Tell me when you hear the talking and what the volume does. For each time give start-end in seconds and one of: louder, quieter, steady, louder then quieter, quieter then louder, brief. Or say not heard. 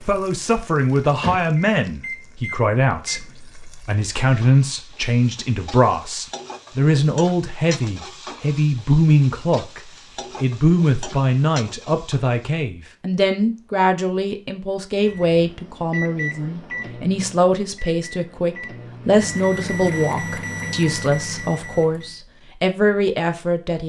0.0-23.8 steady.